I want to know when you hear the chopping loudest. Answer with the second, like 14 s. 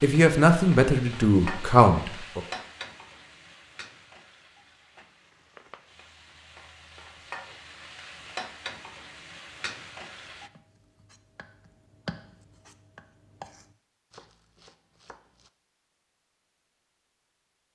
12 s.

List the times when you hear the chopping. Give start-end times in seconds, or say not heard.
10.3-15.5.